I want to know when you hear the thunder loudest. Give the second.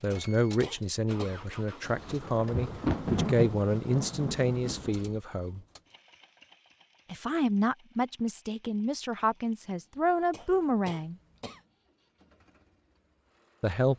3 s.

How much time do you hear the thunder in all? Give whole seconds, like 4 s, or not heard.
3 s.